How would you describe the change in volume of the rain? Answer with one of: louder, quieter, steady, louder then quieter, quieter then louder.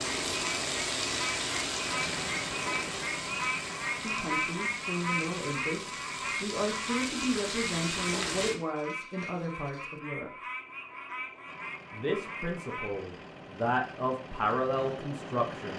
quieter then louder.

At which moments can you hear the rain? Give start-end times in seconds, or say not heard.
0.0-8.6.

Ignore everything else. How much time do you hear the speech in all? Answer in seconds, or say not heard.
10 s.